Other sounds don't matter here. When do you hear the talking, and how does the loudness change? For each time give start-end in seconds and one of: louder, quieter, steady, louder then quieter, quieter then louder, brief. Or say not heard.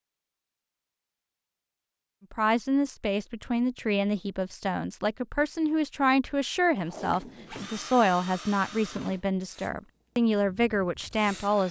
2.3-11.6 steady.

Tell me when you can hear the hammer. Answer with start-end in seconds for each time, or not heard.
not heard.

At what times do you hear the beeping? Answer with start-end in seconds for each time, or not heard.
not heard.